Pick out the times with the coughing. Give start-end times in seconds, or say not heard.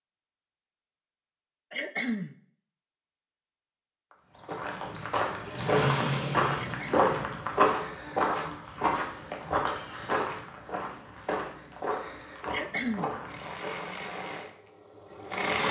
1.7-2.4, 6.5-7.0, 12.5-13.1.